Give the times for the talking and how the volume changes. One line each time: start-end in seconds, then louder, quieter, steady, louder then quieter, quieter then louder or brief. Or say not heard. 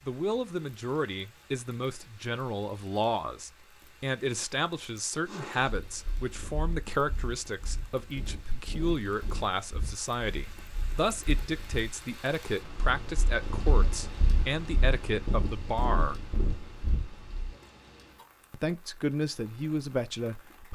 0.1-16.2 steady
18.5-20.7 brief.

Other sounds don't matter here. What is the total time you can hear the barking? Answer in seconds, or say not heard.
not heard.